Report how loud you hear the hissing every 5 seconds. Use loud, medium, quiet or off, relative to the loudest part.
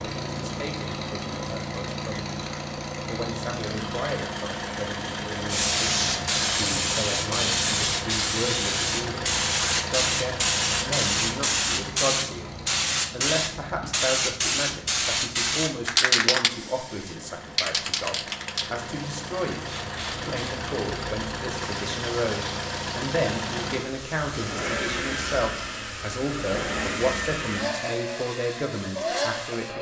off, loud, loud, loud, quiet, quiet.